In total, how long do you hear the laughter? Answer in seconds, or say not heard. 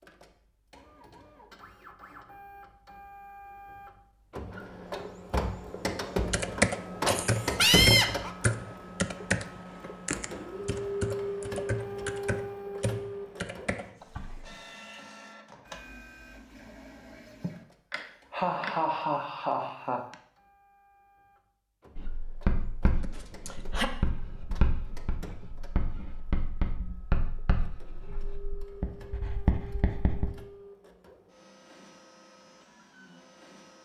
5 s.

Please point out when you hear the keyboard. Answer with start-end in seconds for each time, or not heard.
6.3-14.6.